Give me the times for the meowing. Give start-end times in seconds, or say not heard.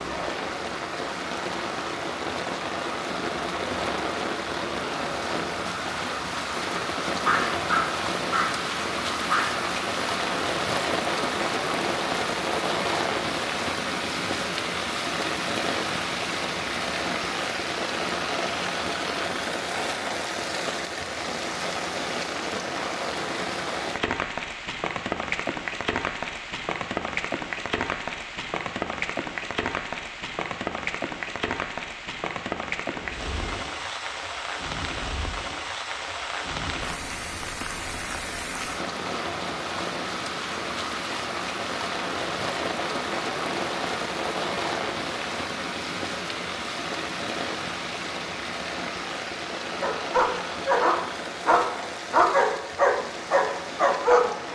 32.9-33.6.